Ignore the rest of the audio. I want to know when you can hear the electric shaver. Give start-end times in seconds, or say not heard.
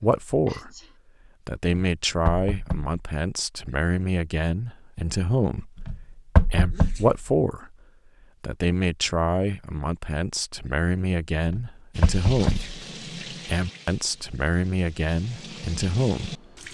not heard.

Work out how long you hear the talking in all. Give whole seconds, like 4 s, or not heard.
15 s.